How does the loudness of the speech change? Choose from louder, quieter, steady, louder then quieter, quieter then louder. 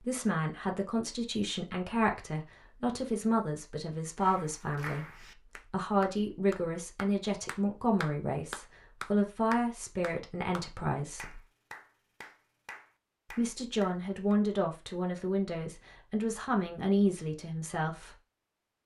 steady.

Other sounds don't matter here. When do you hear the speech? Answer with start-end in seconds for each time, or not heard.
0.0-11.4, 13.3-18.1.